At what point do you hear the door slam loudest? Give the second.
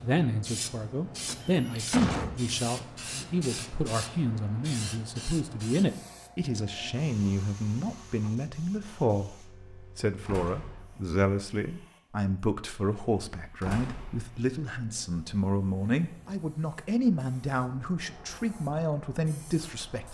2 s.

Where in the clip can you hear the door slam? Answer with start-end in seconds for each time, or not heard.
1.2-2.6, 10.2-11.2, 13.6-14.5.